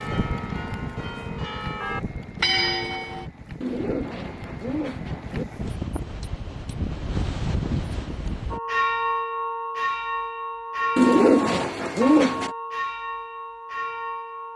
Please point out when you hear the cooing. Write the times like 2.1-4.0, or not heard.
3.6-5.5, 10.9-12.5.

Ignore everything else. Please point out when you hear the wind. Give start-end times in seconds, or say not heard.
0.0-8.6.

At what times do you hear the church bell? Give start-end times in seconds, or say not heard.
0.0-3.3, 8.5-14.5.